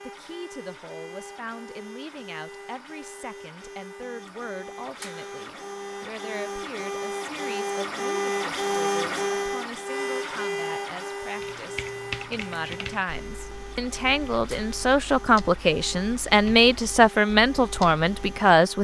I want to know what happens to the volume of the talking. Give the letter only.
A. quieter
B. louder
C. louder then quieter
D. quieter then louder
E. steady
B.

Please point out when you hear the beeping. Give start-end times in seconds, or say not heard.
not heard.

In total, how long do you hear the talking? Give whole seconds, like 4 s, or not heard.
19 s.